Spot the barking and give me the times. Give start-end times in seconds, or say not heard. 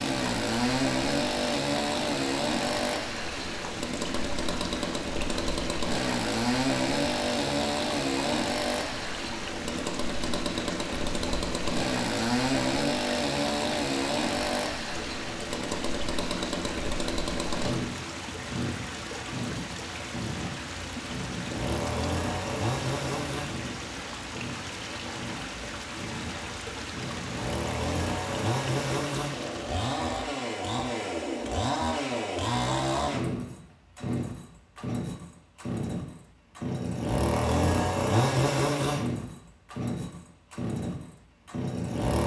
not heard.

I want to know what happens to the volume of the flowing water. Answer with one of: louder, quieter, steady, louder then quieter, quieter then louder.
steady.